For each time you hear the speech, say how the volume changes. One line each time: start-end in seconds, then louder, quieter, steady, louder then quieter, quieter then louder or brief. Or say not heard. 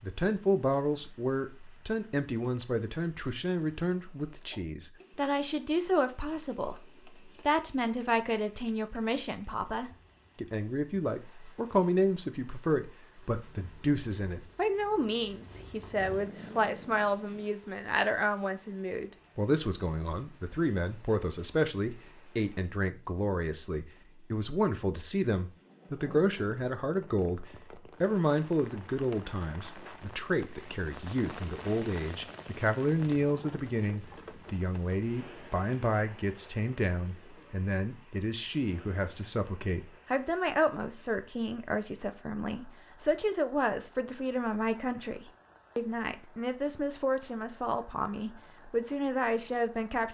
0.0-50.0 steady.